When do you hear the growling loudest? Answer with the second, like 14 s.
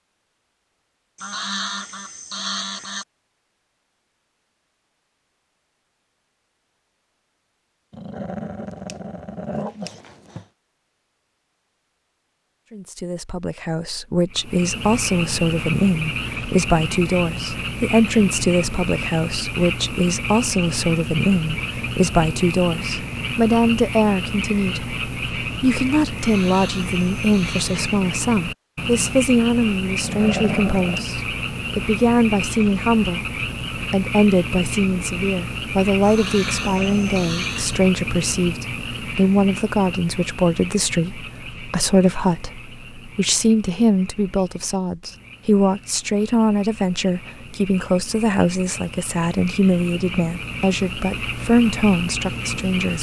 30 s.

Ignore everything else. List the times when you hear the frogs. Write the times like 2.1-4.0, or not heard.
14.3-52.9.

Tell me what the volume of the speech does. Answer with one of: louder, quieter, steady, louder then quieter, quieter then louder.
steady.